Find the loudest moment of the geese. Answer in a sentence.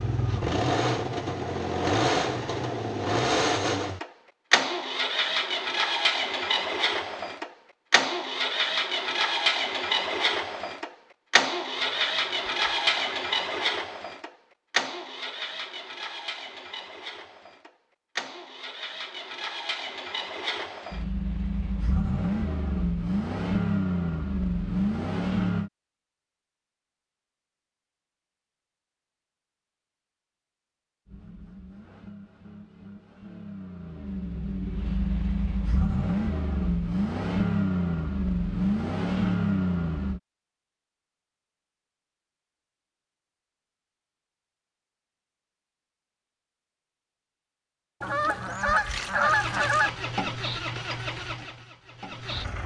The loudest moment of the geese is at 49 seconds.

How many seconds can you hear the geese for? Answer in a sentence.
You can hear the geese for 4 seconds altogether.